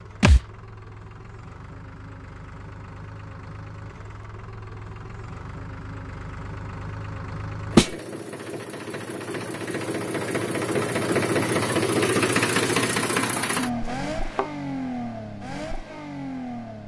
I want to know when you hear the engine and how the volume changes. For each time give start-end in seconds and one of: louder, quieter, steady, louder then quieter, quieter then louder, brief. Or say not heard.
0.0-16.8 louder then quieter.